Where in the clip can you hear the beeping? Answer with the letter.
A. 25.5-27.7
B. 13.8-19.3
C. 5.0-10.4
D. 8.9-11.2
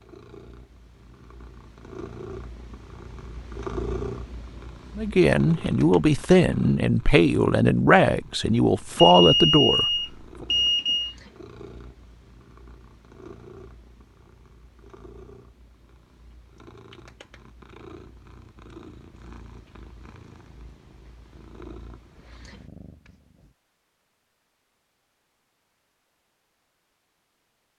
D.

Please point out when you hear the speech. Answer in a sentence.
You can hear the speech from 5.0 to 10.4 s.